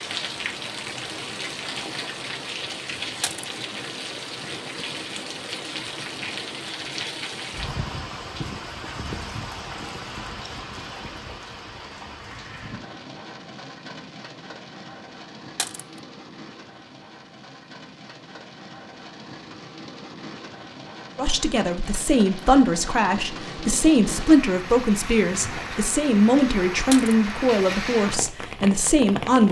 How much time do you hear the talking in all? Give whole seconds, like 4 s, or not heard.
8 s.